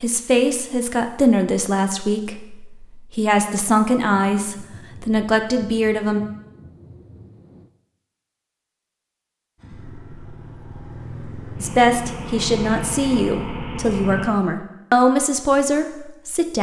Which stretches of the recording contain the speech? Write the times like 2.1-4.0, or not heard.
0.0-6.2, 11.6-16.5.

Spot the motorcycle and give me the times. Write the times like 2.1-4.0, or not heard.
9.6-14.3.